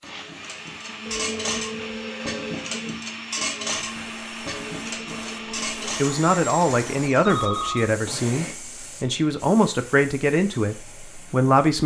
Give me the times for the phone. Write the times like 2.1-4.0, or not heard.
1.1-2.6, 7.2-7.9.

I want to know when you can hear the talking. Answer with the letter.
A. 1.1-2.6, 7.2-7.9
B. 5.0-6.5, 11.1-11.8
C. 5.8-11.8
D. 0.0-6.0
C.